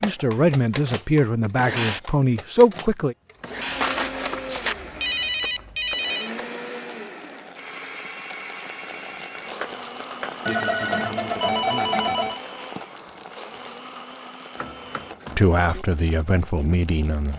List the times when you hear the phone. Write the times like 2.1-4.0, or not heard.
3.7-6.3, 10.4-12.4.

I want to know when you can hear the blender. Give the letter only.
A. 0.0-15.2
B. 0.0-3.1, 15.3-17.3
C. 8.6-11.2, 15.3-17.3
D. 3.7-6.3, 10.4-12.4
A.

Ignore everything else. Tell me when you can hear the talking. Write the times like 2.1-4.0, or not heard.
0.0-3.1, 15.3-17.3.